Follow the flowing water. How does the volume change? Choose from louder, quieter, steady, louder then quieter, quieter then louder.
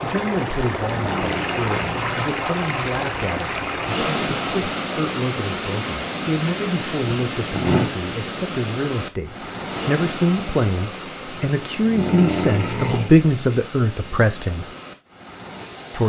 quieter.